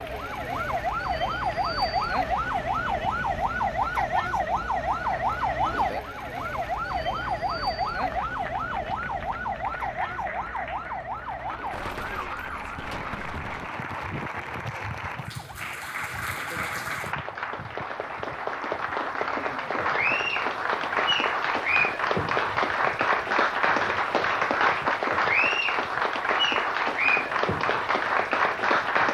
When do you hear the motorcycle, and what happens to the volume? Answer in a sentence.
You can't hear the motorcycle here.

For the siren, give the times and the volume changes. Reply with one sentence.
You can hear the siren from 0.0 to 28.9 s, getting quieter.